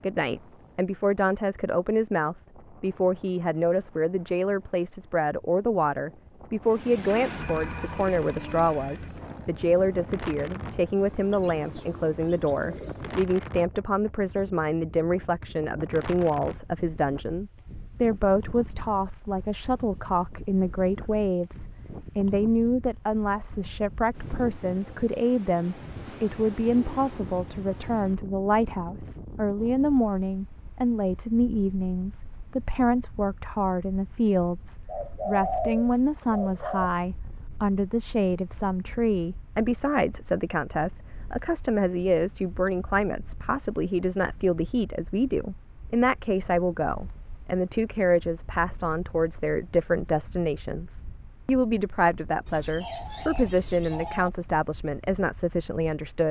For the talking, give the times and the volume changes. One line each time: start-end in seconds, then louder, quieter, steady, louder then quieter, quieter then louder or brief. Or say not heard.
0.0-56.2 steady.